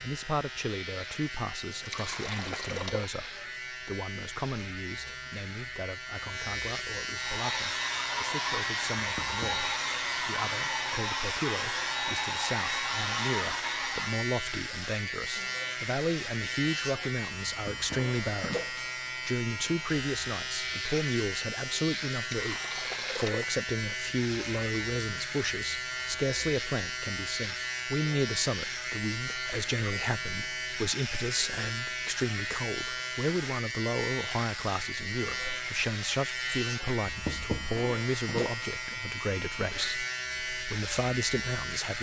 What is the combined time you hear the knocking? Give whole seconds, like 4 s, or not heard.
2 s.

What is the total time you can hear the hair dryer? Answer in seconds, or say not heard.
7 s.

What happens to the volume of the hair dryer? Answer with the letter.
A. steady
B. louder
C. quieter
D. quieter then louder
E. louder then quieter
A.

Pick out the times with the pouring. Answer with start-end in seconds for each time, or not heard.
1.7-3.2, 22.1-23.6.